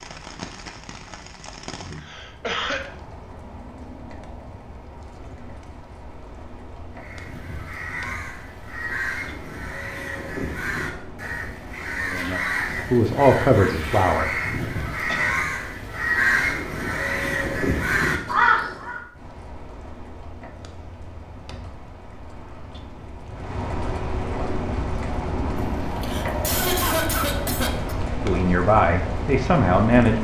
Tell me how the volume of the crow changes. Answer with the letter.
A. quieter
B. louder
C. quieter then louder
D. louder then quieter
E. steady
B.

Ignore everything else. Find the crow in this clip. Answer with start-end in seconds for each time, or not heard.
7.0-19.0.